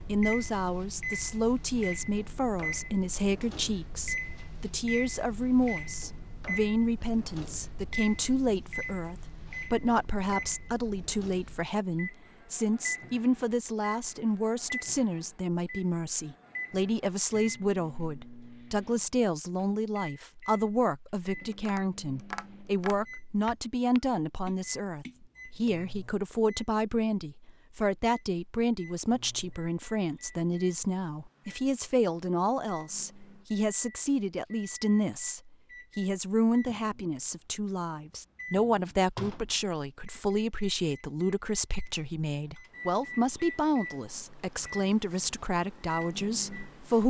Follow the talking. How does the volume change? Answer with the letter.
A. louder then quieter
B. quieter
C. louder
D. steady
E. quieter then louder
D.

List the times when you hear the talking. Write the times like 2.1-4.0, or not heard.
0.1-47.0.